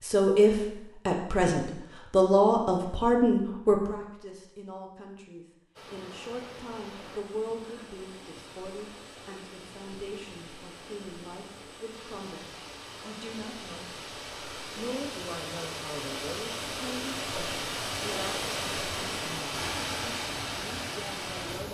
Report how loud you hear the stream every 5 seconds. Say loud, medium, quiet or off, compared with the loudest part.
off, quiet, medium, loud, loud.